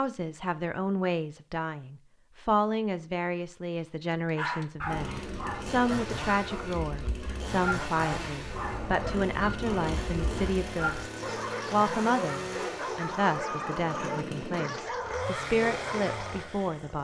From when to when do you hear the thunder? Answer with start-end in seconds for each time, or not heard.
8.5-10.6.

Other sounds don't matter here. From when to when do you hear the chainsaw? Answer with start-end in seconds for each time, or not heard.
4.8-16.9.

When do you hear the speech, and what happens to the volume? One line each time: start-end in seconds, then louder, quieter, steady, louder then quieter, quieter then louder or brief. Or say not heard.
0.0-16.9 steady.